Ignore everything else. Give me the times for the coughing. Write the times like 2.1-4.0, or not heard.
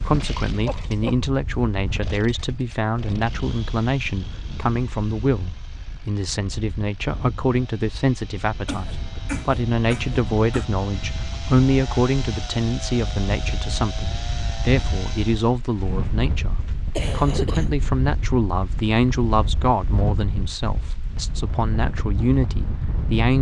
0.7-1.2, 8.7-10.7, 16.9-17.7.